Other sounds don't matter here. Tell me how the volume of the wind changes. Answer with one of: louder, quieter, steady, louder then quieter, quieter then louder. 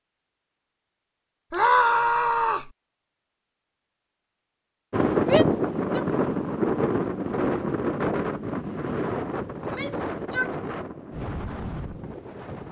quieter.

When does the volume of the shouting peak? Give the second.
2 s.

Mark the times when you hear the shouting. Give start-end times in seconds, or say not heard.
1.5-2.7, 5.2-6.0, 9.6-10.6.